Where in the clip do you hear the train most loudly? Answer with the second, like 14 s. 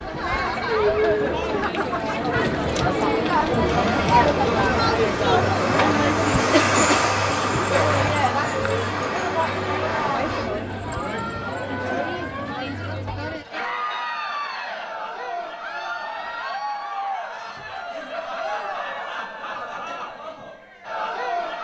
7 s.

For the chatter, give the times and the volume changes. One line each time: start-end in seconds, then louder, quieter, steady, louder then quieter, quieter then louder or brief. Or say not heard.
0.0-21.5 quieter.